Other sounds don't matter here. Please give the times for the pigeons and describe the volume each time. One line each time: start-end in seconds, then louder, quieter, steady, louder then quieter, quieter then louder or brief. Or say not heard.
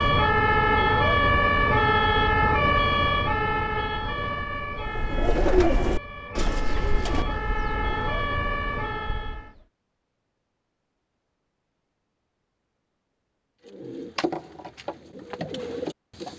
4.8-9.7 quieter
13.7-16.3 brief.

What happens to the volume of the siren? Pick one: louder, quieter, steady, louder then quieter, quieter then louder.
quieter then louder.